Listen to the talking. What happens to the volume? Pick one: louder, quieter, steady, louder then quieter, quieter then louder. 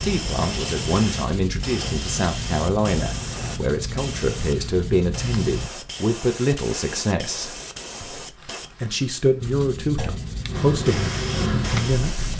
steady.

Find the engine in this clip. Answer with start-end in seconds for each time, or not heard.
10.4-12.3.